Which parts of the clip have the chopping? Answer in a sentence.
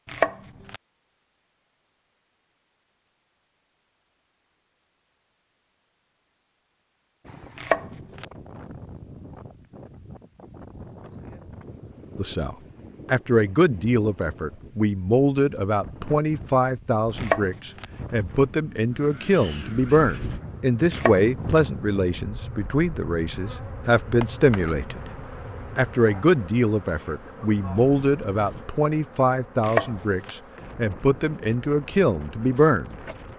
You can hear the chopping from 0.1 to 0.8 s, from 7.5 to 8.2 s, from 17.1 to 17.9 s, from 20.9 to 21.6 s and from 29.6 to 30.4 s.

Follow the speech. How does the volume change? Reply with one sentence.
The volume of the speech stays about the same.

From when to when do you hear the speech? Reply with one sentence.
You can hear the speech from 12.2 to 25.1 s and from 25.8 to 33.0 s.